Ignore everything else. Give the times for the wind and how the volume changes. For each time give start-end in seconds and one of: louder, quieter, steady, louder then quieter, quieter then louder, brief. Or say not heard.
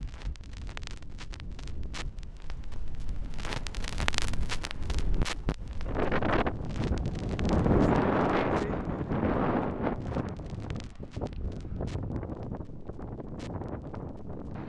0.0-14.6 louder then quieter.